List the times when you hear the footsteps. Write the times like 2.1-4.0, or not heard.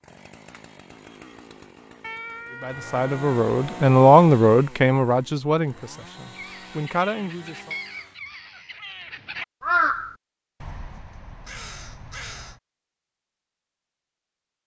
not heard.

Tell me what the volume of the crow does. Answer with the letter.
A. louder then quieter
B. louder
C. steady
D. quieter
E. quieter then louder
A.